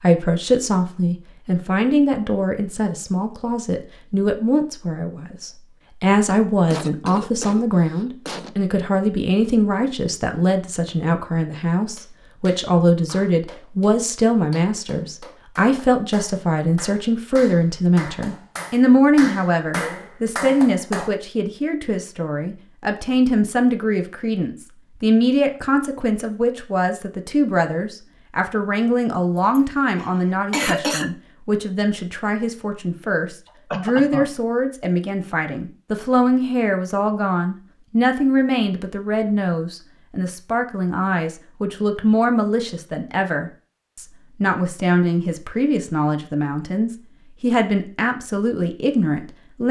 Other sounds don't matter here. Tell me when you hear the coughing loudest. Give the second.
31 s.